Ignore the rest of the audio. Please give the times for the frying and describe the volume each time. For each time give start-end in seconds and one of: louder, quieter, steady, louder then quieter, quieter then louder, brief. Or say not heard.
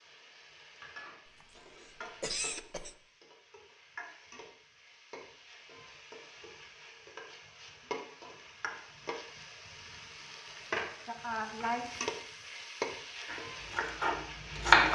0.0-14.8 louder.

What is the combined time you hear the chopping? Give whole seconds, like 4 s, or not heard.
2 s.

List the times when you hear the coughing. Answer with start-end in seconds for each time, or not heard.
1.2-3.0.